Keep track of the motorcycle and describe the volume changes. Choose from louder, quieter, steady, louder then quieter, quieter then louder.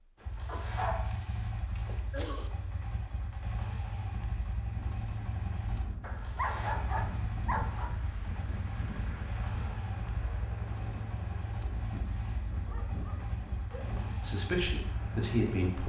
steady.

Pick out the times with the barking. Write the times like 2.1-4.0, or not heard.
0.5-2.5, 6.0-8.0, 12.7-13.8.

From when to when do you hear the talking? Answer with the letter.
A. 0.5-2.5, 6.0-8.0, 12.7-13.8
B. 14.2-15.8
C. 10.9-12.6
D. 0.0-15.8
B.